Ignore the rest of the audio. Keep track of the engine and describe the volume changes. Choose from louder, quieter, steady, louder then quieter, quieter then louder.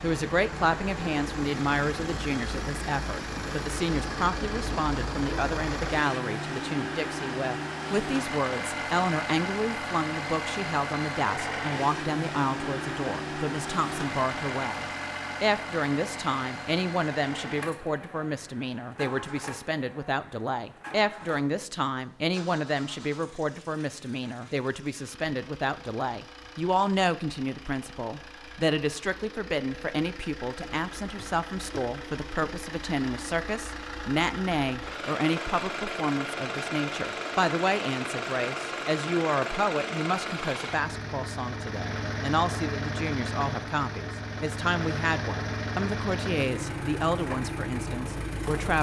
quieter then louder.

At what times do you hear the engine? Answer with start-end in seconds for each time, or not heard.
0.0-48.7.